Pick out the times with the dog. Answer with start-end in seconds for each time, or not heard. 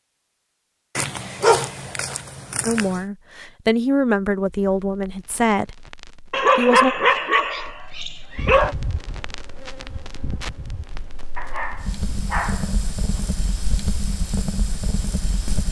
0.9-3.0, 6.3-8.8, 11.3-13.2.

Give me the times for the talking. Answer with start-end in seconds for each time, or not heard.
2.6-5.8, 6.5-7.0.